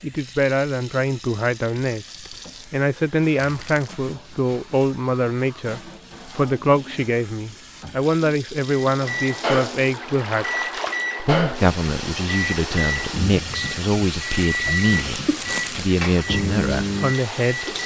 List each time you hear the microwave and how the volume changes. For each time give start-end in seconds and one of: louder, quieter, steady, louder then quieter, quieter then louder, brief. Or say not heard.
8.8-17.8 steady.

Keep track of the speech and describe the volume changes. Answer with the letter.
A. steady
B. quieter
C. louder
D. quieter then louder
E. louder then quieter
A.